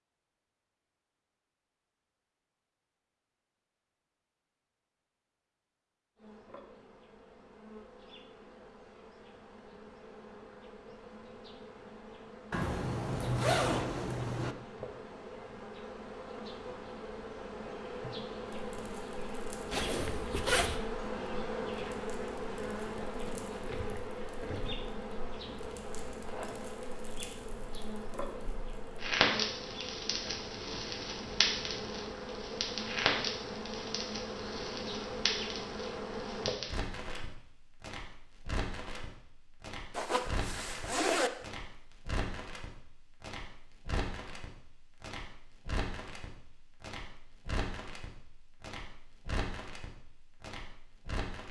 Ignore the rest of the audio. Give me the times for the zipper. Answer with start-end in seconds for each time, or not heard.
12.5-14.6, 19.7-20.8, 39.9-41.3.